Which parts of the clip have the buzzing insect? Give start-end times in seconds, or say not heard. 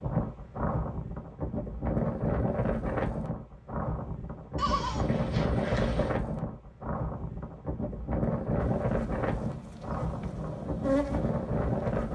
8.6-12.0.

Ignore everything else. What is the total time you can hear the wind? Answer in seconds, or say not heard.
12 s.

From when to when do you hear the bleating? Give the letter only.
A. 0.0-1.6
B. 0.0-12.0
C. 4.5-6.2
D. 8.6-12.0
C.